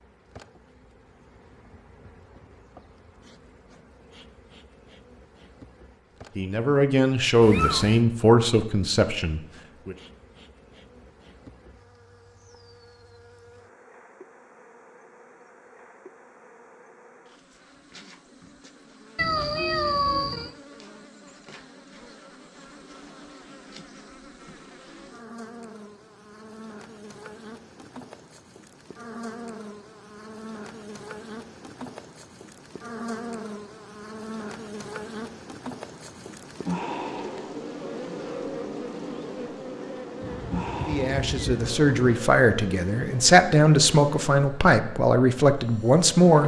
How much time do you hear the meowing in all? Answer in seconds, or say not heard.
4 s.